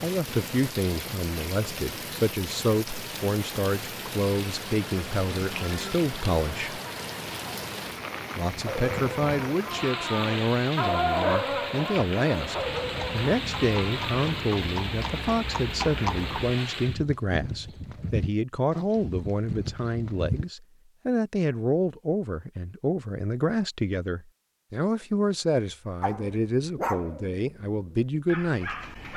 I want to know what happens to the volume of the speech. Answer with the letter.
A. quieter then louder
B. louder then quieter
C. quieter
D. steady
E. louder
D.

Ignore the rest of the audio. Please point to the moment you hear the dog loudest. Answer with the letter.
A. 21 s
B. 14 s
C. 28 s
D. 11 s
D.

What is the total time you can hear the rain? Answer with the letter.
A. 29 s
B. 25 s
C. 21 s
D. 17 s
D.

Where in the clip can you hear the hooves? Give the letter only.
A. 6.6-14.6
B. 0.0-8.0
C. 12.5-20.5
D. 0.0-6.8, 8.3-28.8
C.